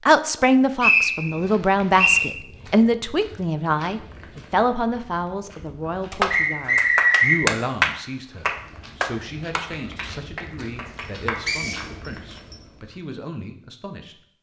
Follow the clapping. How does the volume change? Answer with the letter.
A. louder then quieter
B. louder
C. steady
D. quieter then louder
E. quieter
A.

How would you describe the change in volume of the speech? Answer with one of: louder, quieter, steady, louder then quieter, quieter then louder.
quieter.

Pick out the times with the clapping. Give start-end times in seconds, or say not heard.
6.1-11.5.